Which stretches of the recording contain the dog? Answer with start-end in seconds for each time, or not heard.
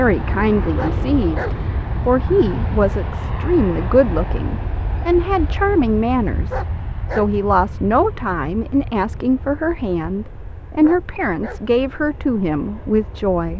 0.8-1.6, 6.5-7.3, 10.8-11.7.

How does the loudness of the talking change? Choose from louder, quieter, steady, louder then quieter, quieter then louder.
steady.